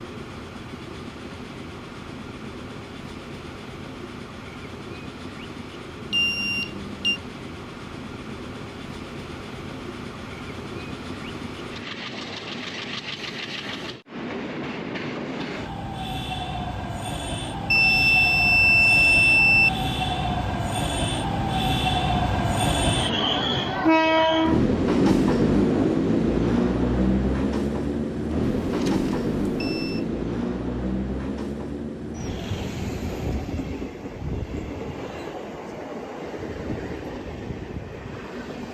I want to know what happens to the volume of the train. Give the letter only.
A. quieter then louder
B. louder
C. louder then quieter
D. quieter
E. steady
C.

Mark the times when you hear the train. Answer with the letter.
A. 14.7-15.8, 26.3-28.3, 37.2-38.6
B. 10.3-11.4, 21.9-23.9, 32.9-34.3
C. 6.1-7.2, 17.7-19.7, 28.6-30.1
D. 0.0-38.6
D.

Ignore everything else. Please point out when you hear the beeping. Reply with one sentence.
You can hear the beeping from 6.1 to 7.2 s, from 17.7 to 19.7 s and from 28.6 to 30.1 s.